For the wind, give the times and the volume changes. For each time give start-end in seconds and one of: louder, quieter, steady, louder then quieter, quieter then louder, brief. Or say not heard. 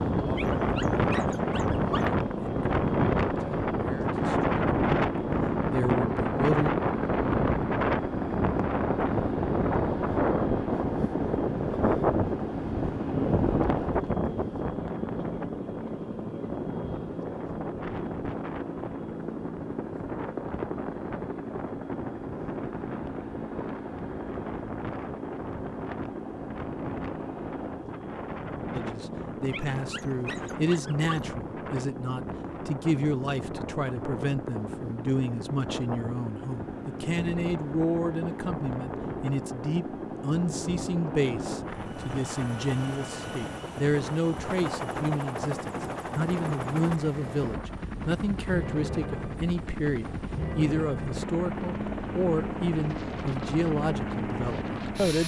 0.0-55.2 quieter.